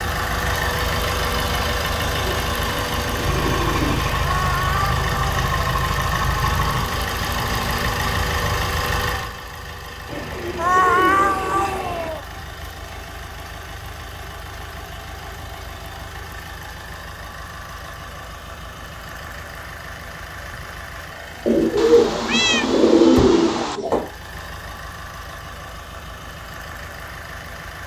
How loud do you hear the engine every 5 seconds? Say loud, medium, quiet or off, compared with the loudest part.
loud, loud, quiet, quiet, quiet, quiet.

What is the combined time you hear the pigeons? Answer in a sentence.
You can hear the pigeons for 7 seconds altogether.